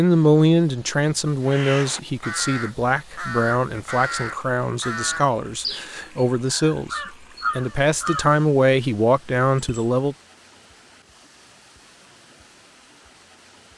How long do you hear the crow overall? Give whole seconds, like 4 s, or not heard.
7 s.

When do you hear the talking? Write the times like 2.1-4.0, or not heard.
0.0-10.2.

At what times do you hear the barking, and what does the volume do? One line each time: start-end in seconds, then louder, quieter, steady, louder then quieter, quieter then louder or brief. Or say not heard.
not heard.